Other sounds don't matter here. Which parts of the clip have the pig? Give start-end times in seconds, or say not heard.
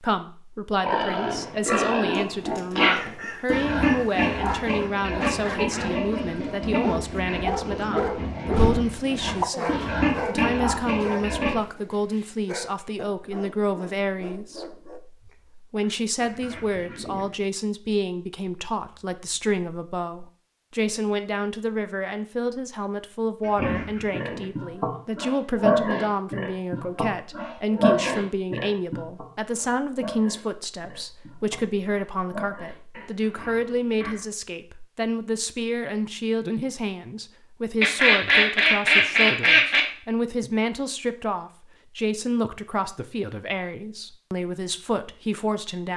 0.8-11.6, 23.6-34.2.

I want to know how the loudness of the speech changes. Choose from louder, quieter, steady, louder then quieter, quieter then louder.
steady.